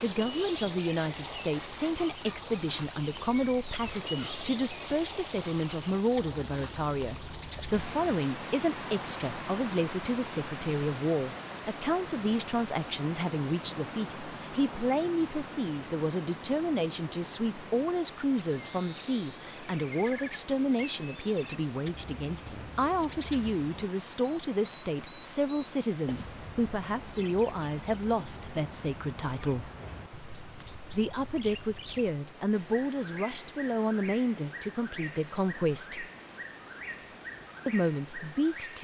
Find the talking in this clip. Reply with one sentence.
You can hear the talking from 0.0 to 29.7 s, from 30.9 to 36.0 s and from 37.6 to 38.7 s.